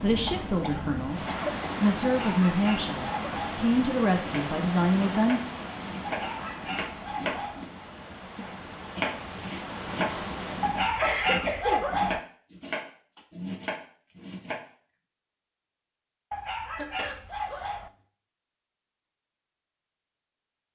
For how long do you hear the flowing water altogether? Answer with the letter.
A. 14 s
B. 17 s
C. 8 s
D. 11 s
D.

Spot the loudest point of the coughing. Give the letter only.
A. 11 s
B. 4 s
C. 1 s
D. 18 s
A.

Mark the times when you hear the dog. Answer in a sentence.
You can hear the dog from 2.0 to 3.6 s, from 6.0 to 7.7 s, from 10.6 to 12.2 s and from 16.3 to 17.9 s.